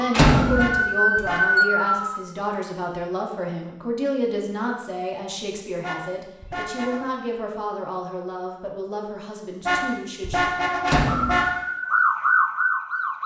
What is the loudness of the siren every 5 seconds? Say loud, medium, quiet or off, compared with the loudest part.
loud, off, loud.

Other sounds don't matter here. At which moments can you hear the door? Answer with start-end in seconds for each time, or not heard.
0.1-0.7, 10.8-11.4.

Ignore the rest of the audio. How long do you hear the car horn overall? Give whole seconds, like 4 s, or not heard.
4 s.